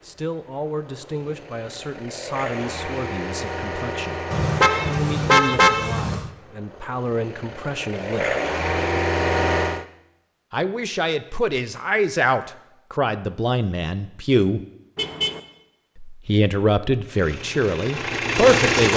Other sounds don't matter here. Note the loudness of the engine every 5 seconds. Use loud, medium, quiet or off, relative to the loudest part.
medium, loud, off, loud.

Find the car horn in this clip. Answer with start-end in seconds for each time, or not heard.
4.3-6.3, 14.9-15.4.